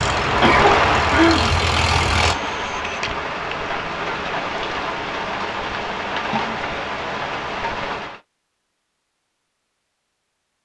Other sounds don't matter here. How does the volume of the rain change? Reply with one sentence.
The loudness of the rain goes down.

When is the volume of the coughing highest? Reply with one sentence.
The loudest moment of the coughing is at 1 second.